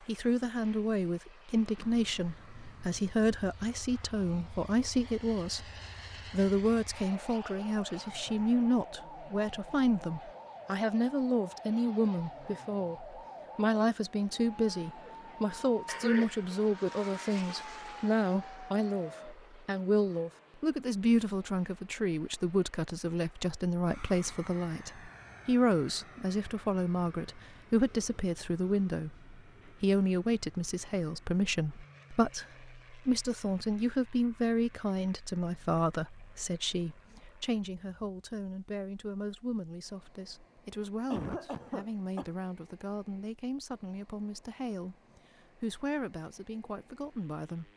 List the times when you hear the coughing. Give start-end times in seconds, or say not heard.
15.8-16.6, 41.1-42.3.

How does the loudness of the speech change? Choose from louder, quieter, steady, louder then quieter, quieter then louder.
quieter.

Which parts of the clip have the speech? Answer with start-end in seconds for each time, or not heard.
0.1-5.7, 6.3-47.7.